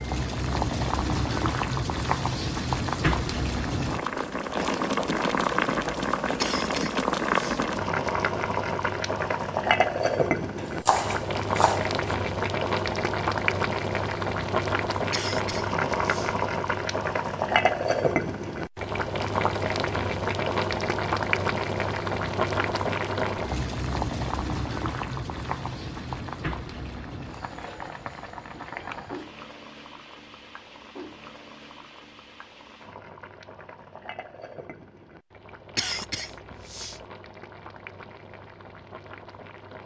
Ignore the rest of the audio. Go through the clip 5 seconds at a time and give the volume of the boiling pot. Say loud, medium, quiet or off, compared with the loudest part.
loud, loud, loud, loud, loud, medium, quiet, quiet.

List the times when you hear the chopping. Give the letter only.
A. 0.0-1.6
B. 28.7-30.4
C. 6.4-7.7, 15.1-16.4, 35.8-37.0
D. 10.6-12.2
D.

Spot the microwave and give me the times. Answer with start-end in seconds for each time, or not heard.
not heard.